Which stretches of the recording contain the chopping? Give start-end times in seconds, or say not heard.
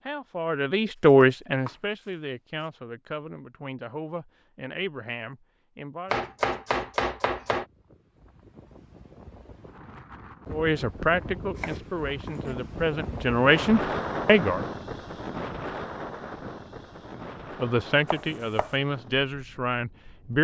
1.1-2.6, 6.1-7.7, 11.6-12.6, 18.1-18.8.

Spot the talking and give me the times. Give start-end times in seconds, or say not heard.
0.1-6.2, 10.5-14.6, 17.1-20.3.